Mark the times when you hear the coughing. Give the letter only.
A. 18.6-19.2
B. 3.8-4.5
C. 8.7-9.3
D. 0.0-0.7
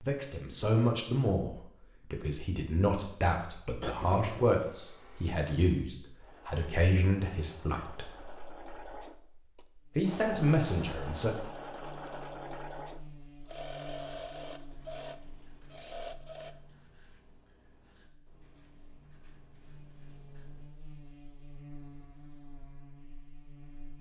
B.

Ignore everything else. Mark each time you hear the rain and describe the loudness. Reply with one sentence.
You can't hear the rain here.